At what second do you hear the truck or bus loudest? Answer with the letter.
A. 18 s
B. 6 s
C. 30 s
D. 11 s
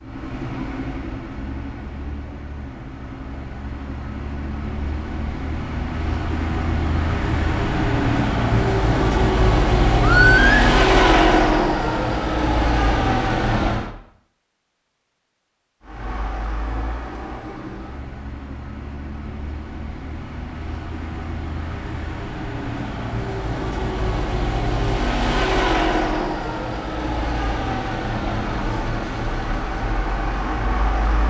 D.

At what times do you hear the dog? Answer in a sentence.
You can't hear the dog here.